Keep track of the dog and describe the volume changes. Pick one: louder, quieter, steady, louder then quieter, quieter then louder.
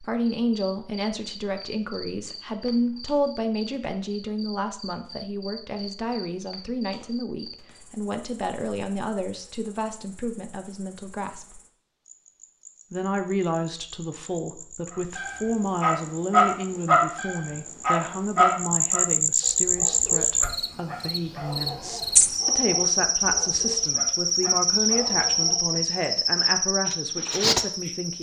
quieter.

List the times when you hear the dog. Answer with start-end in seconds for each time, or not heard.
14.9-25.9.